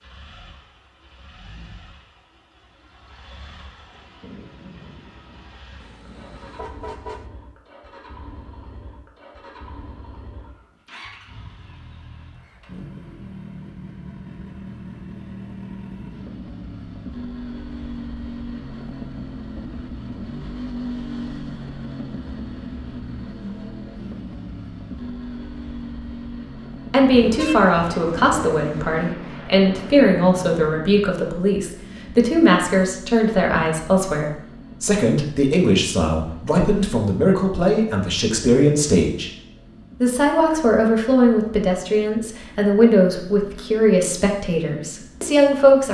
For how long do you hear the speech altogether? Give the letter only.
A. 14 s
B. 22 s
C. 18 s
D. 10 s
C.